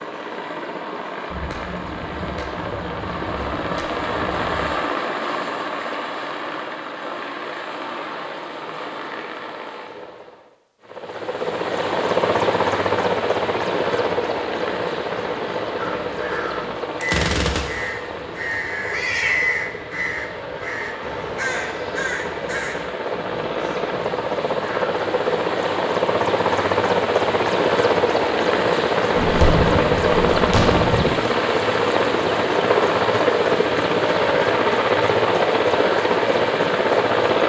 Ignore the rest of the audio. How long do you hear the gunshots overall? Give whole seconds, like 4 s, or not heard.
6 s.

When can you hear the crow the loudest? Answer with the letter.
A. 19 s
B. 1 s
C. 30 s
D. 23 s
A.